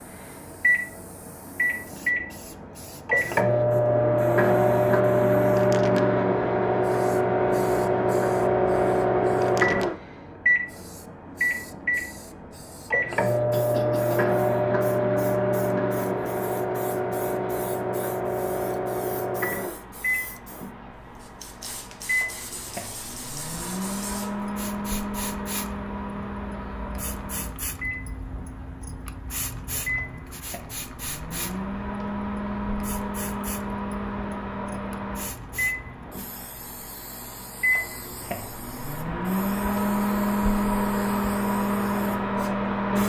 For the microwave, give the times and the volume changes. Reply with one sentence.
The microwave can be heard from 0.1 to 43.0 s, getting quieter then louder.